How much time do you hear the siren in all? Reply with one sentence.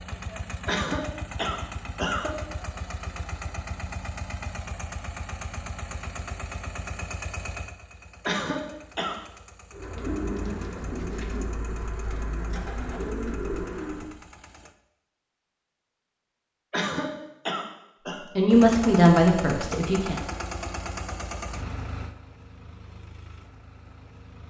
You can't hear the siren here.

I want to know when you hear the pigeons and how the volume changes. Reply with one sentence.
The pigeons can be heard from 9.7 to 14.1 s, getting quieter then louder.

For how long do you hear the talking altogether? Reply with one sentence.
You can hear the talking for 2 seconds altogether.